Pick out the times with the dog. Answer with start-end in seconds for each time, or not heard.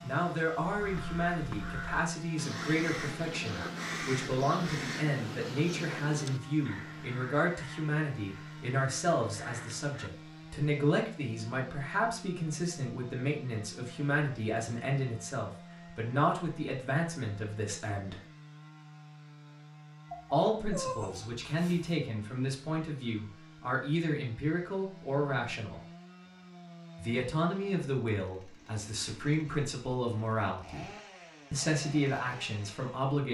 20.1-21.9.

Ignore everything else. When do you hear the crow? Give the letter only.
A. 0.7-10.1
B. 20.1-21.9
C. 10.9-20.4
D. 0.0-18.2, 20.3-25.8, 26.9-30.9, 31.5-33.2
A.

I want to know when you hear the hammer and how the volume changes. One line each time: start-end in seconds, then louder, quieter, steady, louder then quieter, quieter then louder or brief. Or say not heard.
not heard.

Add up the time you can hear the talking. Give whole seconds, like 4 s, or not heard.
29 s.